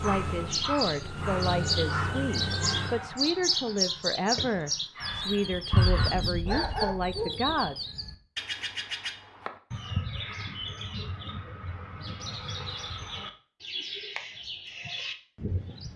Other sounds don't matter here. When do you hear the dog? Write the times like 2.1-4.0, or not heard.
0.0-7.5.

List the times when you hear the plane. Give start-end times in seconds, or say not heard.
0.0-3.1.